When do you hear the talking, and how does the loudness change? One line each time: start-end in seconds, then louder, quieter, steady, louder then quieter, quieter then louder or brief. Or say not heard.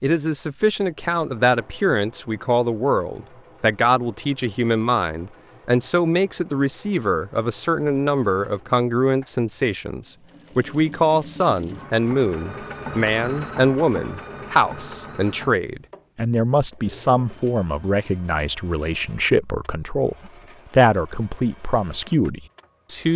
0.0-23.1 steady.